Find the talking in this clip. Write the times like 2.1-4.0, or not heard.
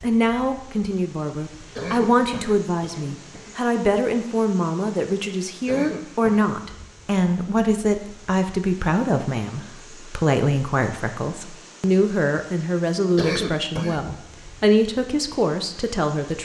0.0-16.3.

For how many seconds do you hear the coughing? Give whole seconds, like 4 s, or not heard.
4 s.